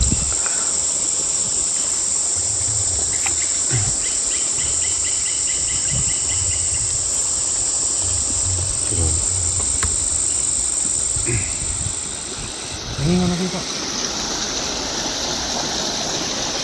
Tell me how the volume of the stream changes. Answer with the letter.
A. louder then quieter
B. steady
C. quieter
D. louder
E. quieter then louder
D.